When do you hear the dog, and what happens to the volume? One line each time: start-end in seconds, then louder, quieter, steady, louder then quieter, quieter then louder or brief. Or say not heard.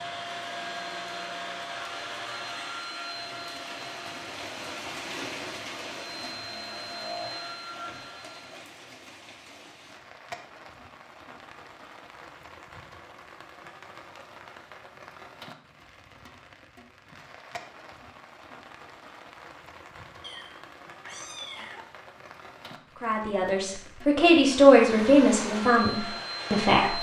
not heard.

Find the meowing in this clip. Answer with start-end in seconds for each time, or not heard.
20.2-21.9.